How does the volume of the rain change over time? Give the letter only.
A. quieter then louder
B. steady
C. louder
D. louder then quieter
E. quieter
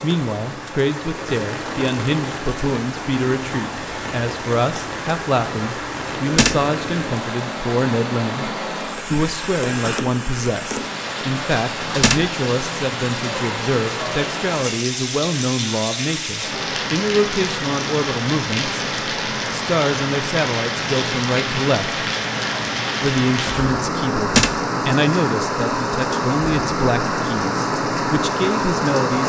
C.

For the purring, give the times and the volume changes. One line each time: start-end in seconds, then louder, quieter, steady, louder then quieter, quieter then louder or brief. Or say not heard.
not heard.